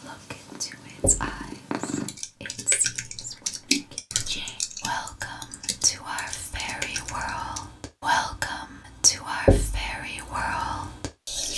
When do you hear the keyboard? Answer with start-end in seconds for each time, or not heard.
2.0-7.7.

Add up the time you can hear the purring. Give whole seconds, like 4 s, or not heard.
2 s.